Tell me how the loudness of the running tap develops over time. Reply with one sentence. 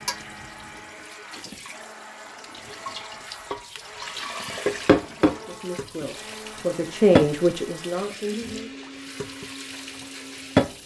The loudness of the running tap goes up, then down.